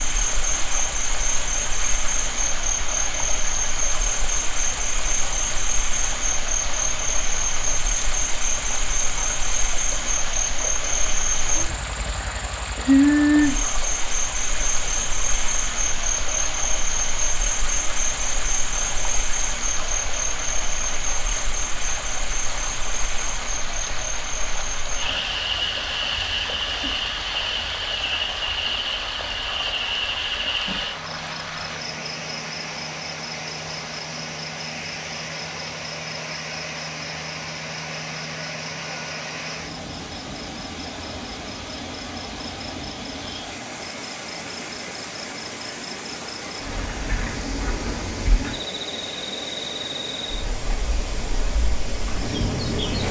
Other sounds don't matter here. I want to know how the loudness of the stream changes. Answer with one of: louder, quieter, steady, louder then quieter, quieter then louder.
steady.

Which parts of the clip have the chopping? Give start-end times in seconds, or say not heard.
not heard.